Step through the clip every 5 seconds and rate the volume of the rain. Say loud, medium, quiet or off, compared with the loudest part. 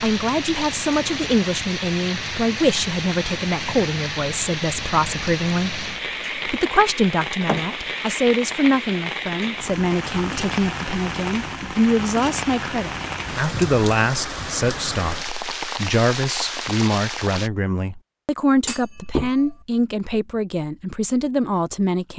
loud, loud, loud, loud, off.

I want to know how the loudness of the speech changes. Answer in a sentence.
The volume of the speech stays about the same.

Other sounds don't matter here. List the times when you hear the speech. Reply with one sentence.
The speech can be heard from 0.0 to 22.1 s.